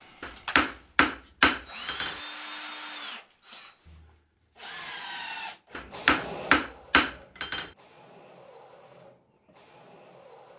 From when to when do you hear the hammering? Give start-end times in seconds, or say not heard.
0.2-2.1, 5.8-7.7.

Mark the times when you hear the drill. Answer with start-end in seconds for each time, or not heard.
0.0-10.5.